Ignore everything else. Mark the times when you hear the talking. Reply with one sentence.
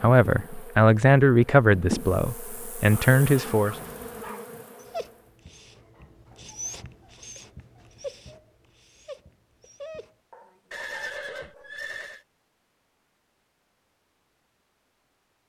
You can hear the talking from 0.0 to 3.8 s.